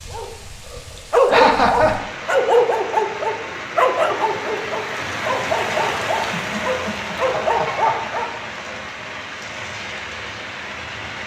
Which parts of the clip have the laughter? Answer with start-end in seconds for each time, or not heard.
1.2-1.9, 6.3-8.0.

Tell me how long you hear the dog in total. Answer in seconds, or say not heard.
8 s.